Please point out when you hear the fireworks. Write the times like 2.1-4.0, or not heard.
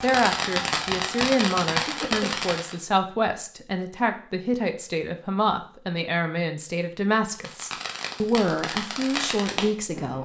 0.0-2.8, 7.2-10.2.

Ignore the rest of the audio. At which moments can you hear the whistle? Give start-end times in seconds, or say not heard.
not heard.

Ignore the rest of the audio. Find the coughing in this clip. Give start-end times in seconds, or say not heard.
1.7-2.4.